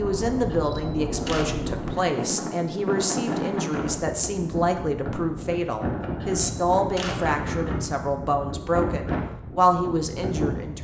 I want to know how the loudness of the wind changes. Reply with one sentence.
The volume of the wind stays about the same.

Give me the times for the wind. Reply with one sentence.
You can hear the wind from 0.0 to 10.7 s.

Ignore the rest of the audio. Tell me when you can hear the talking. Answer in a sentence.
The talking can be heard from 0.0 to 10.7 s.